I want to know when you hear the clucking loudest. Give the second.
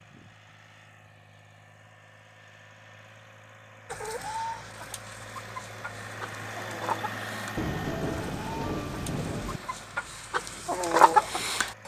11 s.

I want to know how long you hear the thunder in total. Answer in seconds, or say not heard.
2 s.